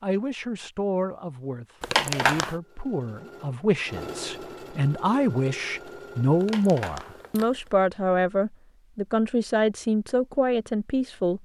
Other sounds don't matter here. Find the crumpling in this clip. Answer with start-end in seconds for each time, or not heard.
1.8-2.5, 6.4-7.7.